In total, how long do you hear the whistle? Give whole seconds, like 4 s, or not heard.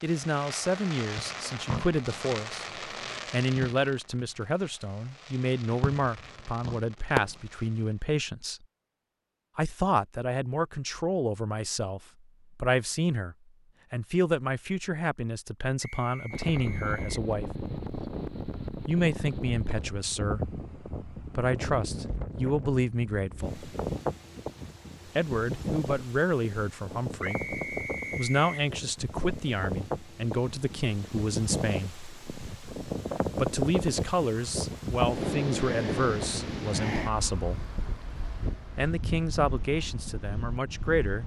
3 s.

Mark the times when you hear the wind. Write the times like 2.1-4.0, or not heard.
16.3-41.2.